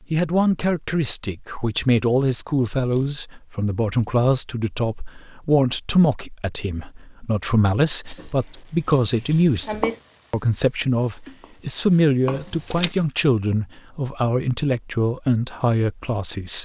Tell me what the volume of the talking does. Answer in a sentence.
The loudness of the talking stays about the same.